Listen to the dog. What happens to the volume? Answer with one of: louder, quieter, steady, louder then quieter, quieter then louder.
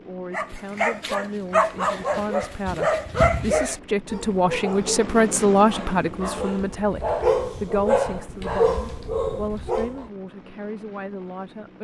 quieter then louder.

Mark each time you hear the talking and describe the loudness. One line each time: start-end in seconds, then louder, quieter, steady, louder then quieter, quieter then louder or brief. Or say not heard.
0.0-11.7 louder then quieter.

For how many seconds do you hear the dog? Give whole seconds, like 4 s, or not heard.
10 s.